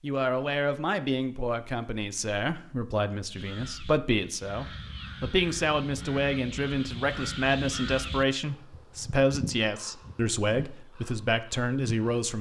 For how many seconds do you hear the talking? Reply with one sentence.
The talking can be heard for 12 seconds in total.